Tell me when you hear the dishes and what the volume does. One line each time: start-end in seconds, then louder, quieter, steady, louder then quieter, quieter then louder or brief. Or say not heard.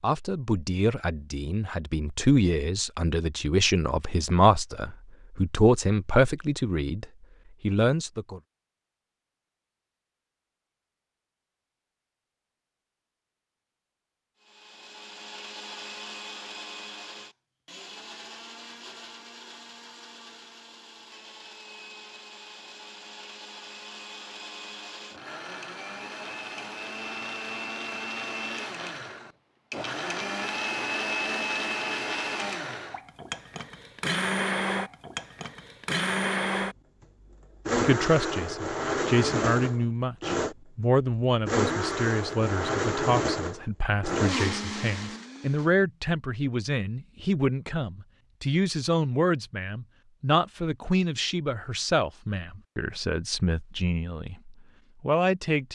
not heard.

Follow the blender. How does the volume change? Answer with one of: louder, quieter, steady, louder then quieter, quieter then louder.
louder.